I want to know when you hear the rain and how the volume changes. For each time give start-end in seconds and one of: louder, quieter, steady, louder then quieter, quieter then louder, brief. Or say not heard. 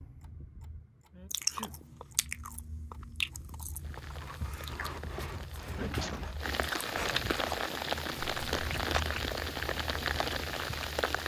3.8-11.2 louder.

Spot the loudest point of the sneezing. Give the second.
6 s.